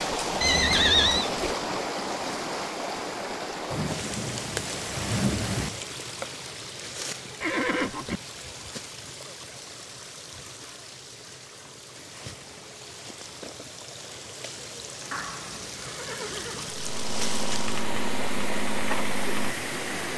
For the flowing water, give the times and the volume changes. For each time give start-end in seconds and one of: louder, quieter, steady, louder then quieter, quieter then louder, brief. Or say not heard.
0.0-20.1 quieter then louder.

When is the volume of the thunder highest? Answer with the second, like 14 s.
5 s.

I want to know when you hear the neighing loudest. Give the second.
1 s.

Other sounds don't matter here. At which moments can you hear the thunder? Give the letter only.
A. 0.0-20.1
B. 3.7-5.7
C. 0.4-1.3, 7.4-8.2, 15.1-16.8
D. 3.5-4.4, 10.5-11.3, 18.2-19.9
B.